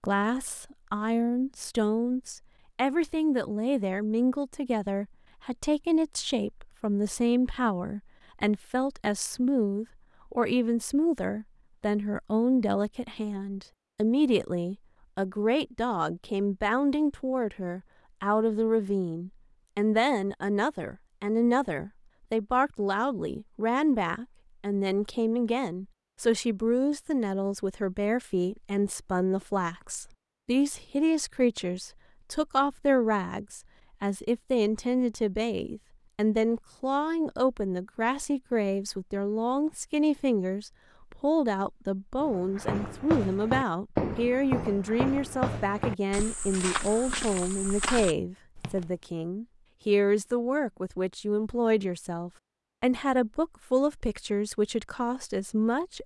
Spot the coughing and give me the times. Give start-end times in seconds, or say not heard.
not heard.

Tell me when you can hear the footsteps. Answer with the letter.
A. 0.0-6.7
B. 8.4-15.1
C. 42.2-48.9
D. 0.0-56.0
C.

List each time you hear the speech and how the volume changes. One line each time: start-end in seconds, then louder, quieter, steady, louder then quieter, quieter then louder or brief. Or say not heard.
0.0-56.0 steady.